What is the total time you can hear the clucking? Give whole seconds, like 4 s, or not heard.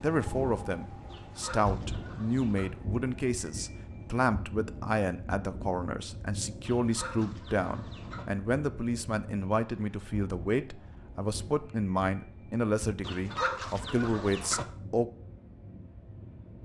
5 s.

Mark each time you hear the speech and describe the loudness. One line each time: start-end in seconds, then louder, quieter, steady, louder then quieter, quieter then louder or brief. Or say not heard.
0.0-15.1 steady.